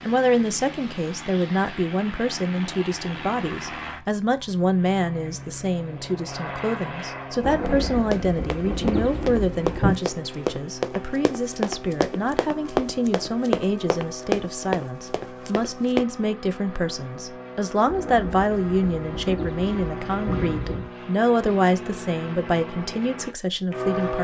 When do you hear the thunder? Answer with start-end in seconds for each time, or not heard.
7.4-9.9, 17.9-20.9.